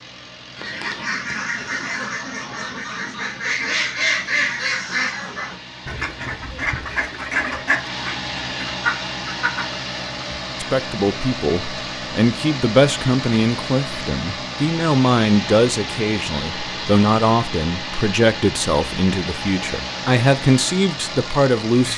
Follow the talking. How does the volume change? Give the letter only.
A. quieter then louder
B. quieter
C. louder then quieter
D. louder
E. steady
E.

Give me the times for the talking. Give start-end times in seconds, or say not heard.
10.6-21.9.